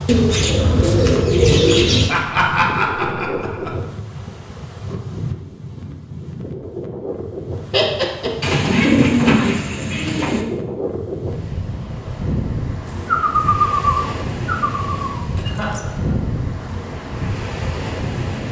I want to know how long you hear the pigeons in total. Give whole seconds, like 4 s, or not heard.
7 s.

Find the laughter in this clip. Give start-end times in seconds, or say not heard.
2.0-3.8, 7.7-8.6, 15.4-16.4.